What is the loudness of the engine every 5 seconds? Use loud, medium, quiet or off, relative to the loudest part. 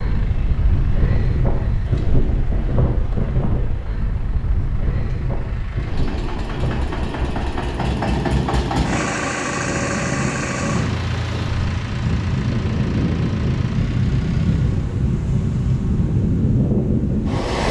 quiet, loud, loud, off.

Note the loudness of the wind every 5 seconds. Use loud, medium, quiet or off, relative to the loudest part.
medium, medium, loud, loud.